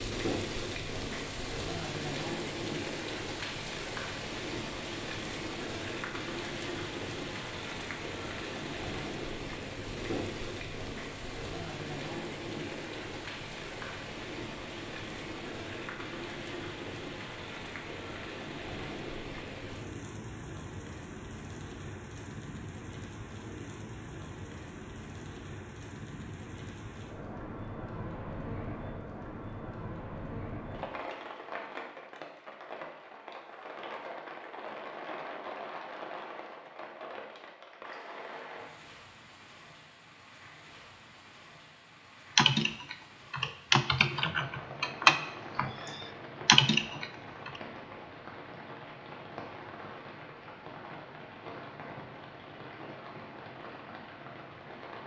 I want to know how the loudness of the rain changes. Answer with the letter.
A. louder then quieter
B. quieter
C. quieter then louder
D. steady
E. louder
B.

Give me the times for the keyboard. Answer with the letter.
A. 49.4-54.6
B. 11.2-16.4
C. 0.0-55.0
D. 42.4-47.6
D.